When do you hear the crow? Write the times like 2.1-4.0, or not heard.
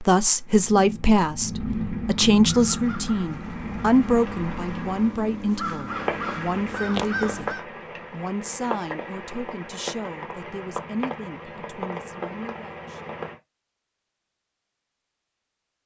2.5-7.7.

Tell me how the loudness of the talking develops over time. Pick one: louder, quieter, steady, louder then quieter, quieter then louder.
quieter.